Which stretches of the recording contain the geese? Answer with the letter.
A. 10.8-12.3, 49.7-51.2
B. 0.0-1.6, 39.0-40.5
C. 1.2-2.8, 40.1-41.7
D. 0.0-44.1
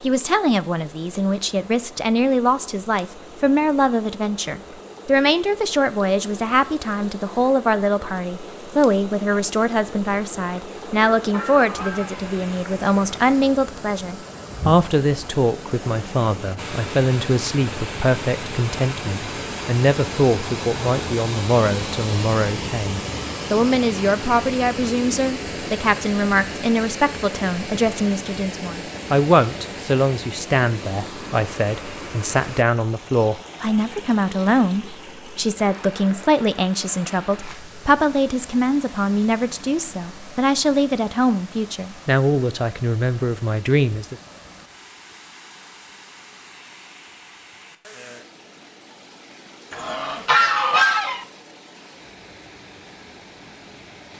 A.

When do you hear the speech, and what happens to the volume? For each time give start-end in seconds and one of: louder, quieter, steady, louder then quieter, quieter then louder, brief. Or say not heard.
0.0-44.1 steady.